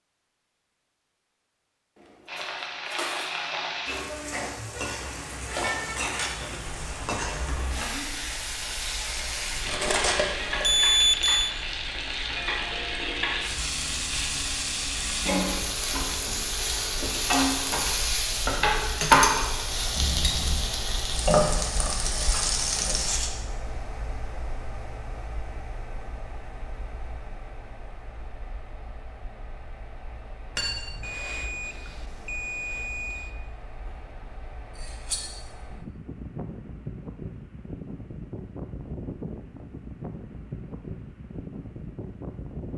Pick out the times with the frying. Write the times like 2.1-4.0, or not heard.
2.2-23.3.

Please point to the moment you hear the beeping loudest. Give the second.
11 s.